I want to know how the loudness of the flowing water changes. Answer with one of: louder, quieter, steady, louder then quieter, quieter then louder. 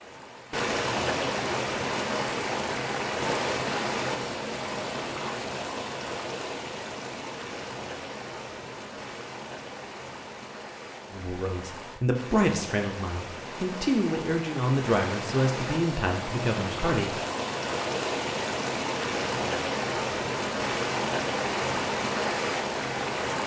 quieter then louder.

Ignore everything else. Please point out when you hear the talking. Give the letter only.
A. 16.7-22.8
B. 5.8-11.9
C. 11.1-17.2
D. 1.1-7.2
C.